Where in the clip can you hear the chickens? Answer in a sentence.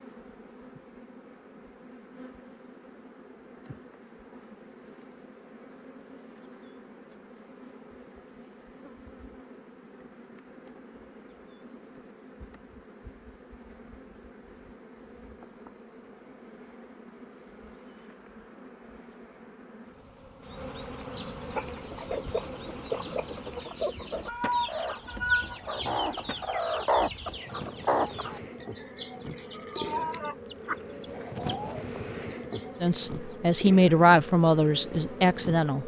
You can hear the chickens from 21.4 to 33.4 s.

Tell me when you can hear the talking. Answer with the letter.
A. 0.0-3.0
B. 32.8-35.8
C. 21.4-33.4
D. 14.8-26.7
B.